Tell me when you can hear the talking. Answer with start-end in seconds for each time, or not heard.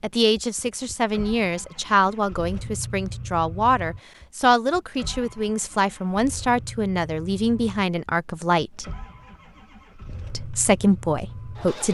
0.0-8.8, 10.3-11.8.